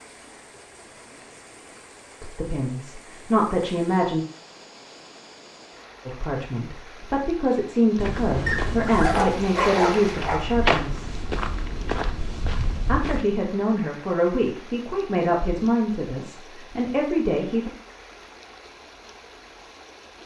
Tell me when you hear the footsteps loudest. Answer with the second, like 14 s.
11 s.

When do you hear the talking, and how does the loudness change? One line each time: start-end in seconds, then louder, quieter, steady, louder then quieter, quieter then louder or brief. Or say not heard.
2.2-4.2 brief
6.0-11.2 louder
12.8-17.7 steady.